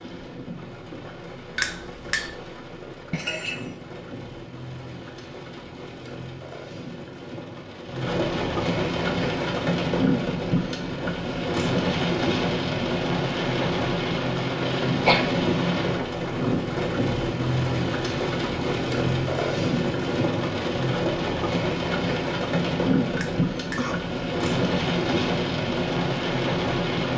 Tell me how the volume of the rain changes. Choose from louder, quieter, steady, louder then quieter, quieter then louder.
louder.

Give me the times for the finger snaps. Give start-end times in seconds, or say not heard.
1.6-2.4, 23.1-23.9.